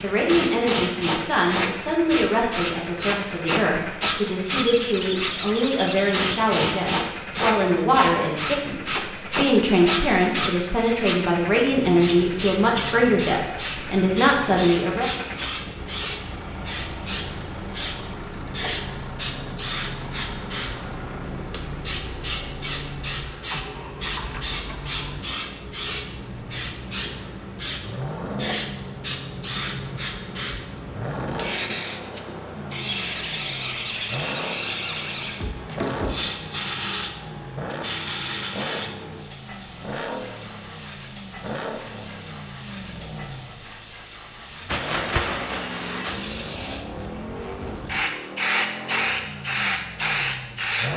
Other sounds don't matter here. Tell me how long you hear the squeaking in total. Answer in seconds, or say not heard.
4 s.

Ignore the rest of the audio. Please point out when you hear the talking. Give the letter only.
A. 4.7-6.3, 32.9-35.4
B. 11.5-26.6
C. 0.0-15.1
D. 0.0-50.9
C.